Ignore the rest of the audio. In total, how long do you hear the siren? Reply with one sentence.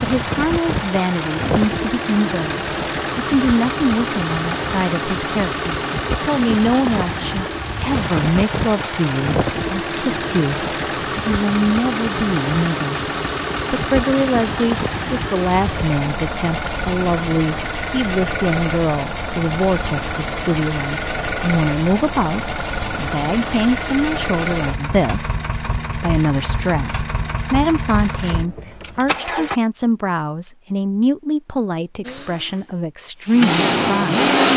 You can't hear the siren here.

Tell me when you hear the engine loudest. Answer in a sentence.
The loudest moment of the engine is at 34 seconds.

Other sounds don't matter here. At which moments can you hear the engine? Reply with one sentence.
You can hear the engine from 0.0 to 29.6 s and from 32.0 to 34.5 s.